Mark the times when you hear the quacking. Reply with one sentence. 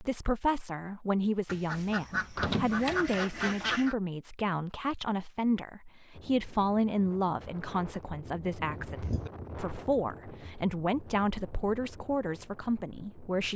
You can hear the quacking from 1.4 to 4.0 s.